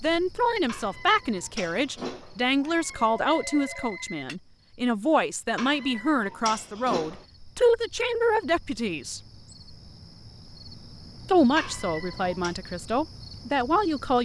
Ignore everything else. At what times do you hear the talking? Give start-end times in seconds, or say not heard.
0.0-9.2, 11.2-14.2.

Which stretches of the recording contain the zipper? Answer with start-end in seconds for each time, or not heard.
not heard.